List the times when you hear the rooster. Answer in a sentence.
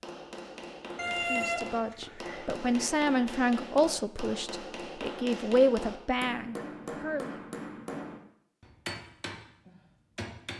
The rooster can be heard from 0.9 to 2.9 s.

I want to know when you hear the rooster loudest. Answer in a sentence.
The volume of the rooster peaks at 1 second.